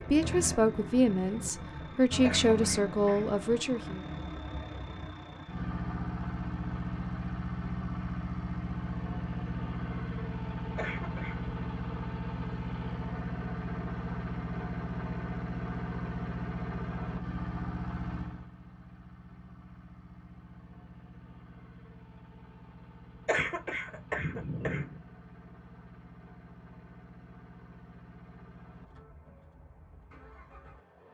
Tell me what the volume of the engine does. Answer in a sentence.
The loudness of the engine goes down.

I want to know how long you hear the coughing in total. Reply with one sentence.
You can hear the coughing for 4 seconds altogether.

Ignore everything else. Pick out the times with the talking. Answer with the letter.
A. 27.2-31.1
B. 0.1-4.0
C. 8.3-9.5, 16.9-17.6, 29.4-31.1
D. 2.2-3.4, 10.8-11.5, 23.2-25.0
B.